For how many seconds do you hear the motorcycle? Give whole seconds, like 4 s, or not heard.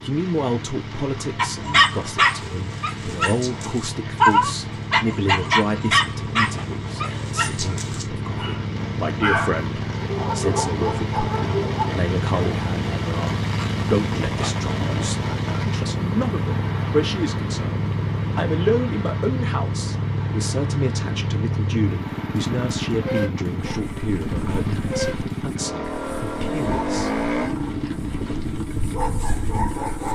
30 s.